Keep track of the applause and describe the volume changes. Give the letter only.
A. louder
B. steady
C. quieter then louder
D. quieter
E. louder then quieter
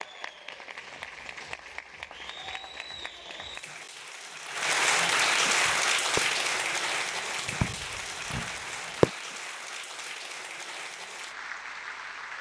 E.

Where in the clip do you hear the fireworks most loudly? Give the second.
9 s.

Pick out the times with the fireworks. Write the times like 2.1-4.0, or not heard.
5.7-9.1.